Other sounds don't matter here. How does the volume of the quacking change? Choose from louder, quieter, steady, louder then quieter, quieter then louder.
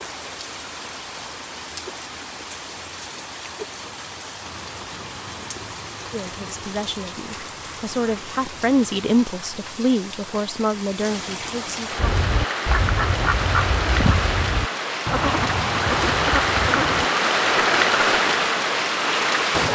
steady.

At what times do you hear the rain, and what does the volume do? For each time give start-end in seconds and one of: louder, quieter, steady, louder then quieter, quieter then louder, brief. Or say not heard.
0.0-19.7 louder.